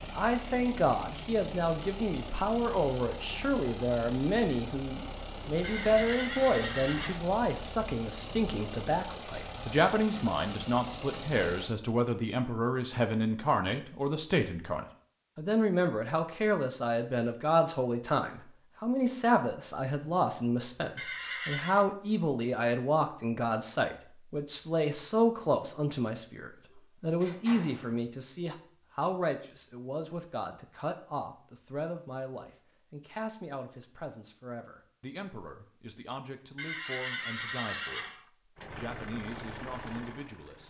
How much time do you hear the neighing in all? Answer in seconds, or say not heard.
4 s.